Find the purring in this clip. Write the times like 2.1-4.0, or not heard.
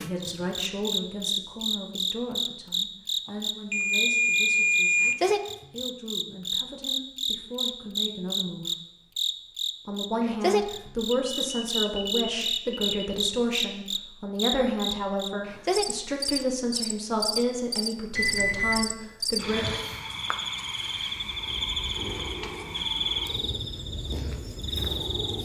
21.2-25.4.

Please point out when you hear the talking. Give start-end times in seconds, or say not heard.
0.0-8.7, 9.8-19.6.